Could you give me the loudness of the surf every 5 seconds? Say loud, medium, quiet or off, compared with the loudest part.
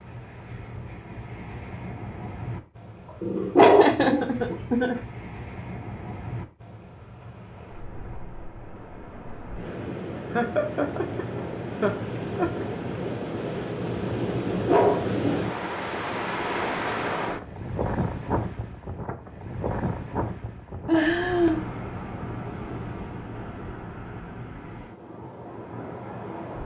medium, medium, loud, loud, medium, medium.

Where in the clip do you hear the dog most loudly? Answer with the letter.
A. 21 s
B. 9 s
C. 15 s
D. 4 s
D.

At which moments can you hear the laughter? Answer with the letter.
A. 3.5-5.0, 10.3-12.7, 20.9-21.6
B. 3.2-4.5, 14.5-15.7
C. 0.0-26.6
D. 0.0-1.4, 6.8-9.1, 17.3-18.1
A.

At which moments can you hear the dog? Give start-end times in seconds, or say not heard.
3.2-4.5, 14.5-15.7.